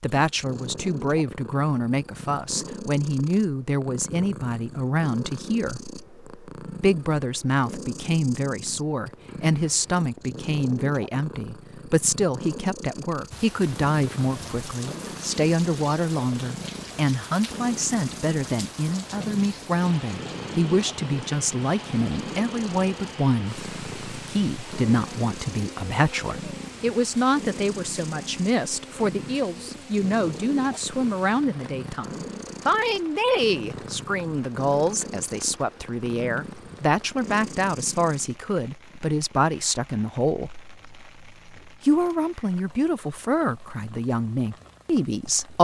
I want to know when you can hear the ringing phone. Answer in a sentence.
The ringing phone can't be heard in this clip.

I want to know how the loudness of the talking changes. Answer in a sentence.
The loudness of the talking stays about the same.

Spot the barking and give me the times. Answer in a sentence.
You can't hear the barking here.